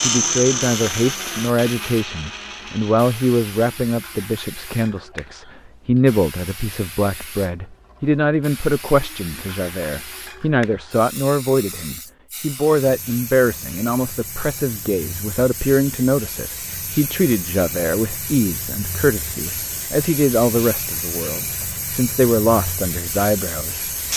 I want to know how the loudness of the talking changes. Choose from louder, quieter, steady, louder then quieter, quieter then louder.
steady.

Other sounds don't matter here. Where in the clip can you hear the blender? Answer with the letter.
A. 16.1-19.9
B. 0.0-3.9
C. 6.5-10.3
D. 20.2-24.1
B.